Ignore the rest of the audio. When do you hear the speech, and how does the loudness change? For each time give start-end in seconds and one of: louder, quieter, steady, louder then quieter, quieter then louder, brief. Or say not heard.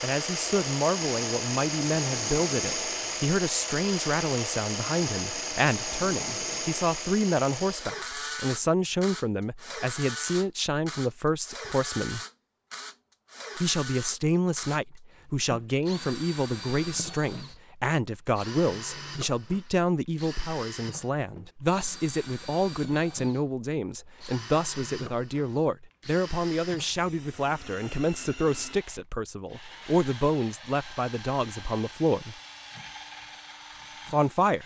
0.0-12.2 steady
13.6-32.4 steady
34.1-34.6 brief.